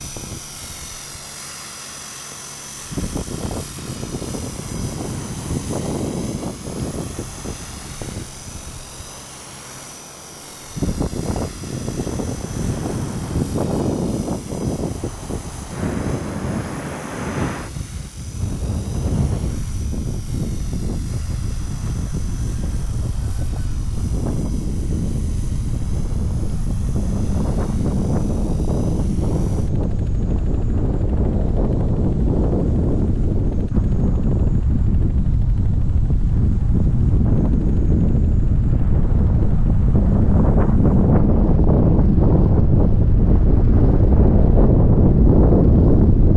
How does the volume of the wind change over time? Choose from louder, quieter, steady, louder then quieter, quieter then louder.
louder.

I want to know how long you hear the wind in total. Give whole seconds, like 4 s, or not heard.
46 s.